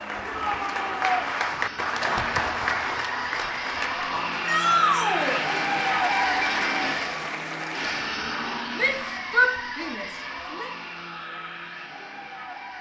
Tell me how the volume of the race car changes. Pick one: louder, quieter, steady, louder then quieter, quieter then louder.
louder then quieter.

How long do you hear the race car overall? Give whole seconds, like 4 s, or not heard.
13 s.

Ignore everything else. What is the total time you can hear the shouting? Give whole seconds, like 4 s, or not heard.
4 s.